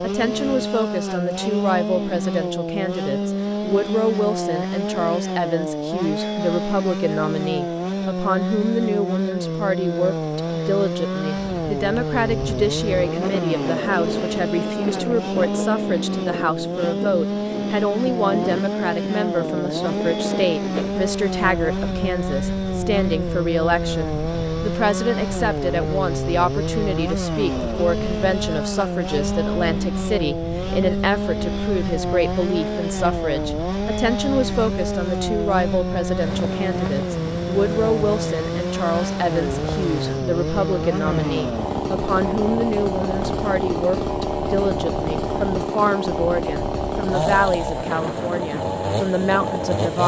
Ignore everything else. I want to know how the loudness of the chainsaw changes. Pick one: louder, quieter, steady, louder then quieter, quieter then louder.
steady.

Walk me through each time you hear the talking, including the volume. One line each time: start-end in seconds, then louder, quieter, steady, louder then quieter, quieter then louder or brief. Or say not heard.
0.0-50.0 steady.